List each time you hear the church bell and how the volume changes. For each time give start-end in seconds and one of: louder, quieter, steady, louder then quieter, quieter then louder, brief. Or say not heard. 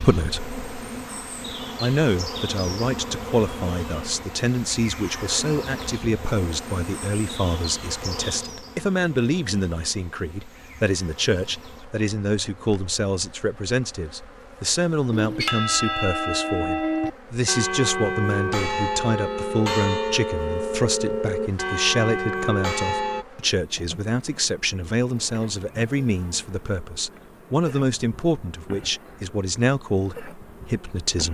15.1-23.2 steady.